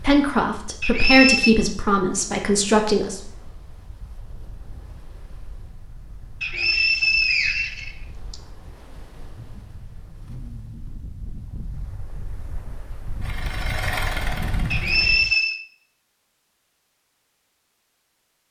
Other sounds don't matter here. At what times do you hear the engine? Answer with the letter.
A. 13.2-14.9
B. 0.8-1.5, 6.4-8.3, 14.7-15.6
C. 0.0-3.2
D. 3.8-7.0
A.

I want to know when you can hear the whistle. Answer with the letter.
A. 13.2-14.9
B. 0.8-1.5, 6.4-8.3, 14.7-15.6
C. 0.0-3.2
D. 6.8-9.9
B.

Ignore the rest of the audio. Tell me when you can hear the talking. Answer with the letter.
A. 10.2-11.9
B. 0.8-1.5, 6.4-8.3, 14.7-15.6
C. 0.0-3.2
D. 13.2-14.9
C.